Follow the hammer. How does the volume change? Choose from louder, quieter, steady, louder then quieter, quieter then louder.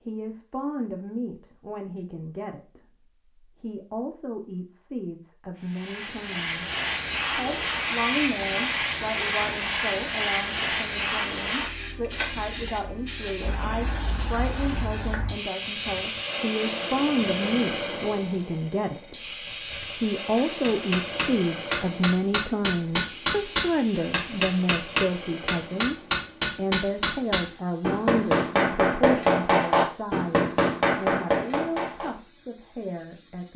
steady.